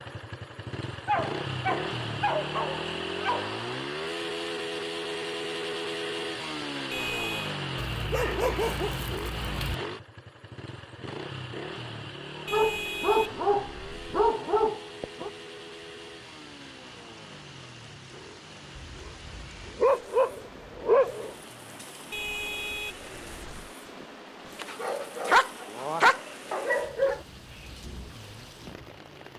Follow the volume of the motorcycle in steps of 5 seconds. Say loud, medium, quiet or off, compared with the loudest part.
loud, loud, medium, quiet, quiet, quiet.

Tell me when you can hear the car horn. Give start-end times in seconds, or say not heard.
6.9-7.5, 12.4-14.2, 22.1-23.8.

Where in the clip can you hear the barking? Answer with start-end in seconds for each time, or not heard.
1.1-3.6, 8.0-9.8, 12.3-15.3, 18.9-21.4, 24.6-27.2.